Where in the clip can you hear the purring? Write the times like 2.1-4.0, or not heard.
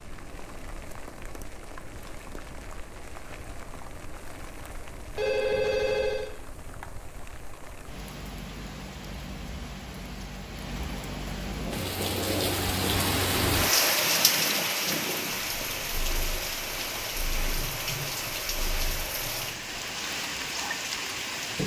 11.4-19.8.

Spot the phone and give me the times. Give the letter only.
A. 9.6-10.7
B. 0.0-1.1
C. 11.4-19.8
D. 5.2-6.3
D.